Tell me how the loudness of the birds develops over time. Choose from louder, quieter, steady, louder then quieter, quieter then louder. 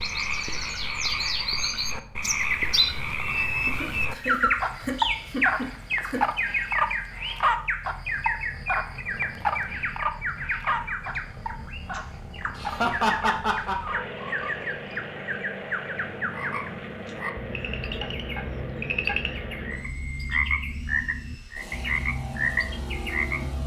quieter.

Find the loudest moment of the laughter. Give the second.
13 s.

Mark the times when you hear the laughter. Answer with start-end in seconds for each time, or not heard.
3.6-6.2, 12.6-13.8.